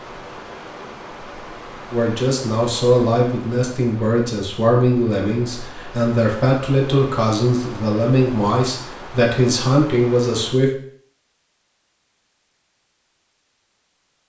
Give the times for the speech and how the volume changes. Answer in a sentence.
The speech can be heard from 1.9 to 10.7 s, at a steady volume.